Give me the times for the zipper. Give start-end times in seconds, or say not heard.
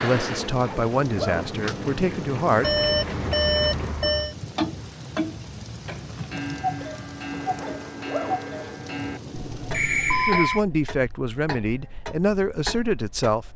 0.5-1.6, 7.3-8.8.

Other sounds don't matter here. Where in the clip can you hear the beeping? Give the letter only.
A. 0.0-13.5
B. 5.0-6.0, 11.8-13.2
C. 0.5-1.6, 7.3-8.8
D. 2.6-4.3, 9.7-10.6
D.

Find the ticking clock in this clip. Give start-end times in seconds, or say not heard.
0.0-13.5.